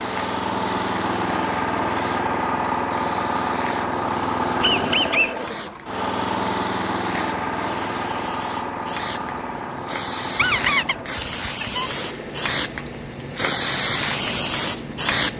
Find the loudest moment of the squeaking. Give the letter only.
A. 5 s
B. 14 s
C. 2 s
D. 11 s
A.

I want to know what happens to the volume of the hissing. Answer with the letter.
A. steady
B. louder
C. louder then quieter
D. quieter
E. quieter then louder
B.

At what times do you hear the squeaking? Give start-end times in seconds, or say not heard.
4.6-5.3, 10.3-11.9.